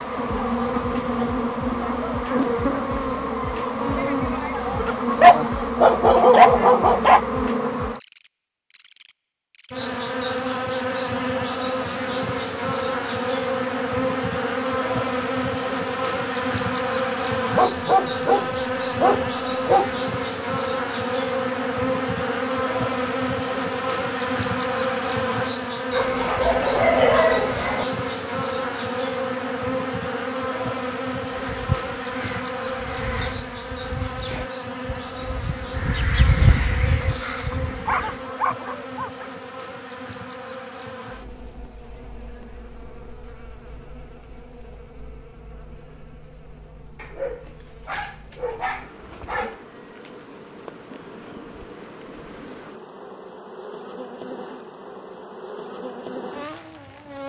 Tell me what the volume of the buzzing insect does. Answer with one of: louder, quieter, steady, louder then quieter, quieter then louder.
quieter.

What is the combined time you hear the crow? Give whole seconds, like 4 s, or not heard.
7 s.